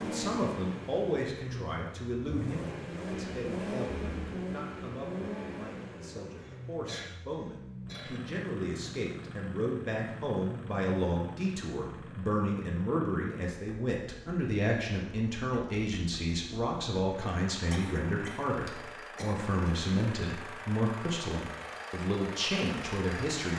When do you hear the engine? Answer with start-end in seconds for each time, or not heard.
0.0-23.5.